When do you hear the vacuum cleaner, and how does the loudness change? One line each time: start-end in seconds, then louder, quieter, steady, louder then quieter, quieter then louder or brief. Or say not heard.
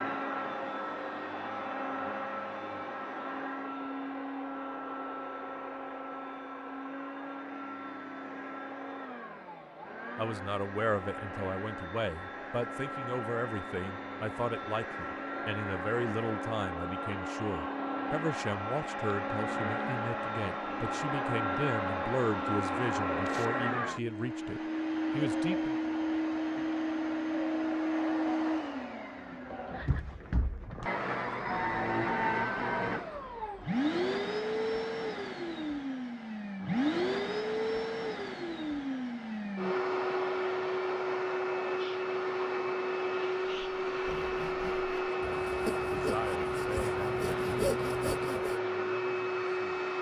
0.0-49.9 louder.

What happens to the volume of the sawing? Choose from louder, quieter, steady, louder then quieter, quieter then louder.
louder.